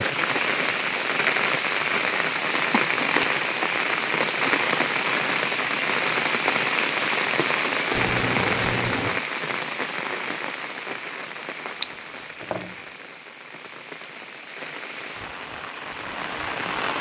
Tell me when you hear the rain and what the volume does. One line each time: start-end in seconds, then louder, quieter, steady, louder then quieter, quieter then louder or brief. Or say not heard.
0.0-16.9 quieter.